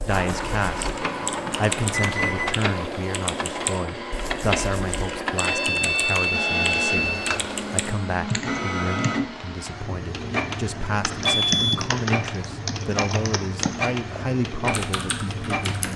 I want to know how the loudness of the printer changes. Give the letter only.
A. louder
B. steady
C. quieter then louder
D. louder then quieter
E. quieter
B.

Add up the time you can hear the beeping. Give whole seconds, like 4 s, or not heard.
3 s.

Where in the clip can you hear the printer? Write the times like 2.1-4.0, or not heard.
0.1-15.9.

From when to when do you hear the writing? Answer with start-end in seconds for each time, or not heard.
not heard.